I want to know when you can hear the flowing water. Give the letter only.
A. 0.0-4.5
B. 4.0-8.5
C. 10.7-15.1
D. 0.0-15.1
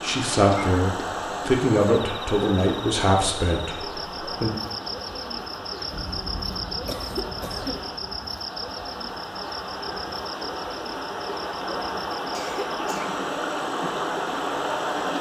D.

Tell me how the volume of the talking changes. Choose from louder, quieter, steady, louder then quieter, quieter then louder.
quieter.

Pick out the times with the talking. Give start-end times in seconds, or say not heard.
0.0-4.5.